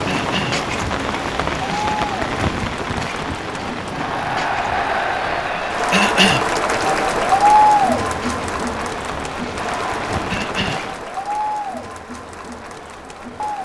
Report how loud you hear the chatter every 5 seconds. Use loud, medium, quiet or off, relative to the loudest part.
medium, loud, medium.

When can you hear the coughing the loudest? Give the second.
6 s.